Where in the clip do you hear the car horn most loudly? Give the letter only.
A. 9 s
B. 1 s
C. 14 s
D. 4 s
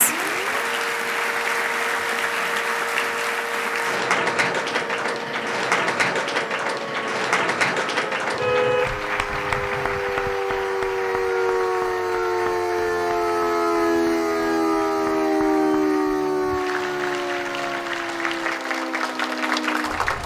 A.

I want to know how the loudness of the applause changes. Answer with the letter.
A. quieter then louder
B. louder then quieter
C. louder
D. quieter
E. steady
A.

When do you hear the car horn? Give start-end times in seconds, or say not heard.
8.3-10.0.